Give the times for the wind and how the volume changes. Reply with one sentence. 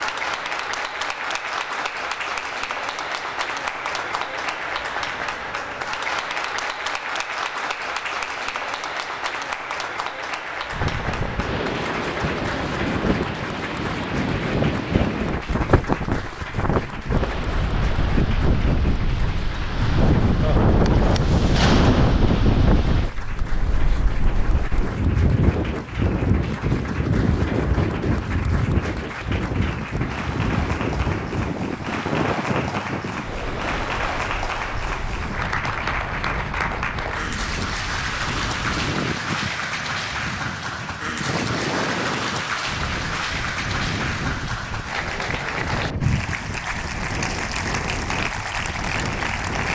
You can hear the wind from 10.7 to 49.7 s, getting quieter.